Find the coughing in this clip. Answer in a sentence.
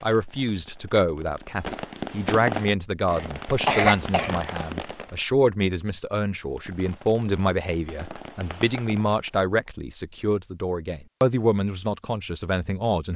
The coughing can be heard from 3.1 to 4.3 s.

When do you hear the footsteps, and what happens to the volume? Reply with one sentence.
The footsteps can't be heard in this clip.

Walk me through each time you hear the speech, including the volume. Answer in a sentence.
You can hear the speech from 0.0 to 13.1 s, at a steady volume.